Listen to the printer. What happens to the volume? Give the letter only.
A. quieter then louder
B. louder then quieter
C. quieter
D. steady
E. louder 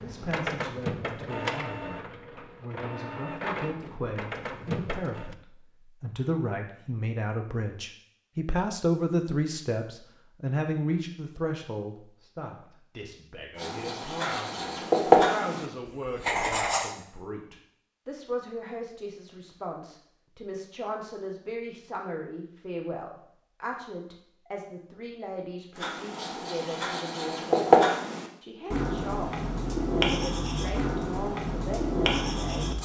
A.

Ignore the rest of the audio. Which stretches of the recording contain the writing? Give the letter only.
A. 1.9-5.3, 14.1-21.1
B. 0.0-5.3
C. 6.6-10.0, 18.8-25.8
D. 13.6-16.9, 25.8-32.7
D.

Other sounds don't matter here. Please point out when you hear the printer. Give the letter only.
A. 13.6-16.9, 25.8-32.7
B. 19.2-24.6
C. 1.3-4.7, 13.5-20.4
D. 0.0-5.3
D.